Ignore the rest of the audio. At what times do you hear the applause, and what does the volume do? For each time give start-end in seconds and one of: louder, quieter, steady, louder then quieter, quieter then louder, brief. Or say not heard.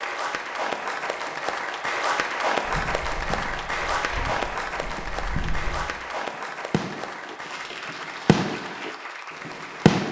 0.0-10.0 quieter.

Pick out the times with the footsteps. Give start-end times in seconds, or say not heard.
2.6-5.8.